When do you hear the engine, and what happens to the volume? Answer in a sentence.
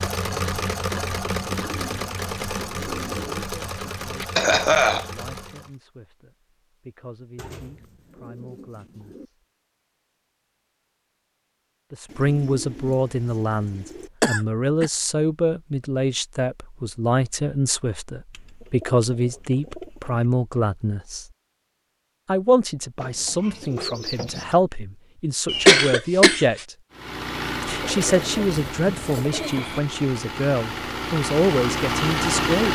The engine can be heard from 0.0 to 5.8 s, getting quieter; and from 26.9 to 32.7 s, getting quieter then louder.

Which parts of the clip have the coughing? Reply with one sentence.
You can hear the coughing from 4.2 to 5.0 s, from 14.2 to 14.8 s and from 25.4 to 26.6 s.